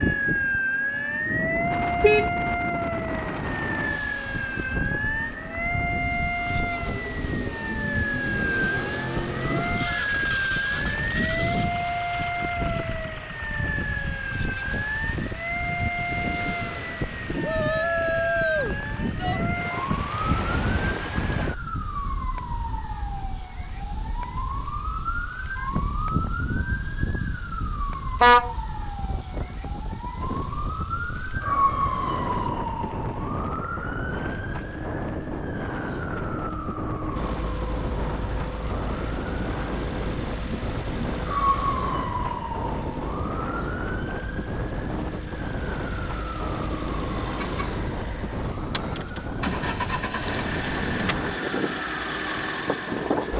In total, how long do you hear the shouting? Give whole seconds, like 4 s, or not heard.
2 s.